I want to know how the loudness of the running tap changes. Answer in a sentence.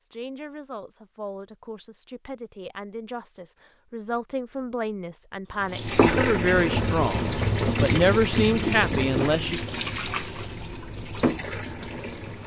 The volume of the running tap goes down.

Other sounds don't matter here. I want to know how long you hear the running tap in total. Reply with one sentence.
The running tap can be heard for 7 seconds in total.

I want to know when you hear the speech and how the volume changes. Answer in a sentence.
The speech can be heard from 0.1 to 9.6 s, getting louder.